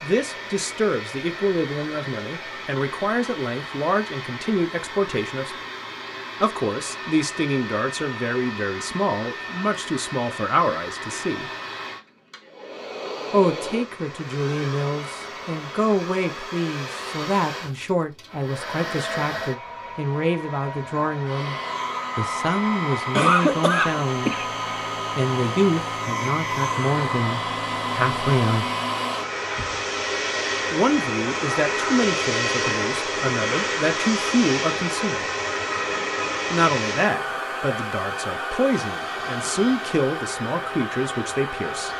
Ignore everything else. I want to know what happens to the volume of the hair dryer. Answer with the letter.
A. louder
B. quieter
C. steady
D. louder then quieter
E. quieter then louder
A.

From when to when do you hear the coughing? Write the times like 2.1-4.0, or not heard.
23.1-24.4.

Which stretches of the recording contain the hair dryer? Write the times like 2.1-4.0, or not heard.
0.0-41.9.